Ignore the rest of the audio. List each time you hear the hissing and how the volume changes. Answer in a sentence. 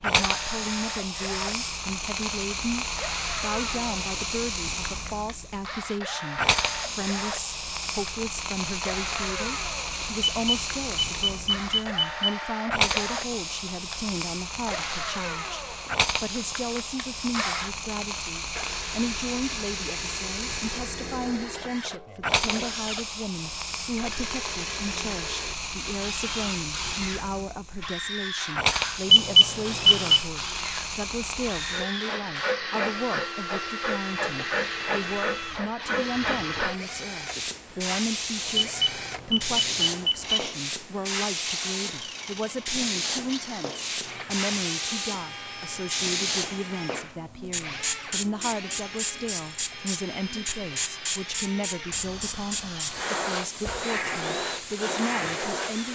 You can hear the hissing from 0.0 to 55.9 s, at a steady volume.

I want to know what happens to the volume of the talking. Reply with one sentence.
The loudness of the talking stays about the same.